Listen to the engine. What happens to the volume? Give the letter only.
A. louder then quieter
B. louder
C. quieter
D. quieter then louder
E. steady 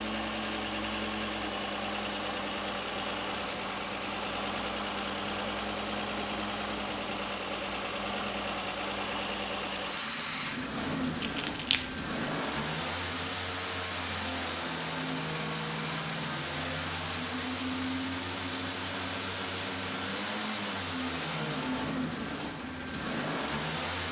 E.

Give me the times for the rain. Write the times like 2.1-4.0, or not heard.
not heard.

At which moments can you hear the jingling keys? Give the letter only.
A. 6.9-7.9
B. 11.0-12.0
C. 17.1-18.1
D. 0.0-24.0
B.